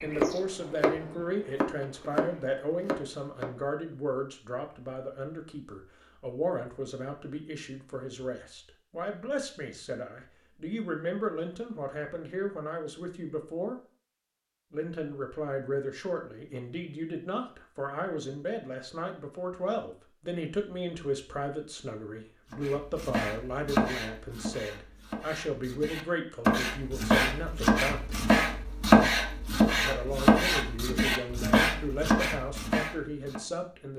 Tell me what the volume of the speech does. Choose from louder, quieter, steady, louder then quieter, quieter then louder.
steady.